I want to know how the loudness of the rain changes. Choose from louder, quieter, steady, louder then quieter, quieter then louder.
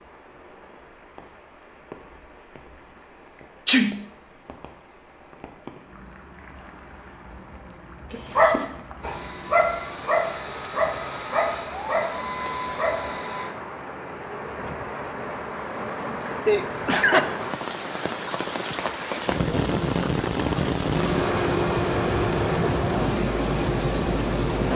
louder.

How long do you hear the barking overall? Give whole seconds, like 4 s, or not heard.
5 s.